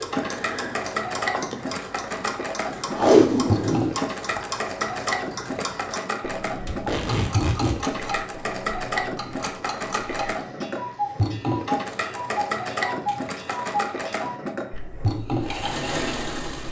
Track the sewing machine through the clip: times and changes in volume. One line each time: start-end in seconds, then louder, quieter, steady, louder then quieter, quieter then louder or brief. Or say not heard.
0.0-16.6 steady.